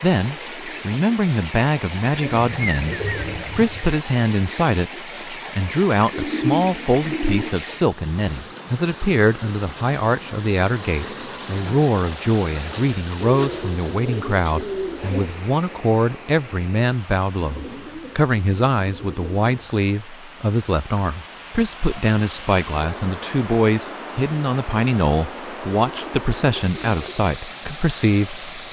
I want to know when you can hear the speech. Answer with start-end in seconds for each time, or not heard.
0.0-28.6.